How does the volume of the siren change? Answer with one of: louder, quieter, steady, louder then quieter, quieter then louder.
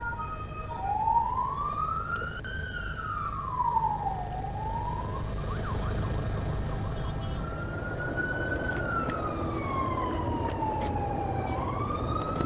quieter then louder.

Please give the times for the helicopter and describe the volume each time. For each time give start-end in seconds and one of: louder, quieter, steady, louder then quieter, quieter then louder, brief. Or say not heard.
0.0-12.4 louder then quieter.